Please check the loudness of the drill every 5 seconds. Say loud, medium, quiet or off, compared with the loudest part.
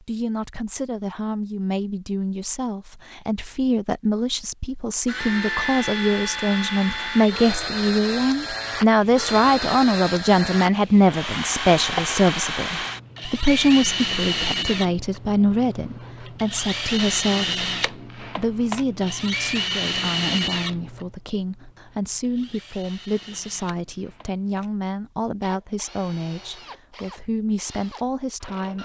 off, loud, loud, loud, medium, quiet.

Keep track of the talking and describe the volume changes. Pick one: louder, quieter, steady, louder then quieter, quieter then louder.
louder then quieter.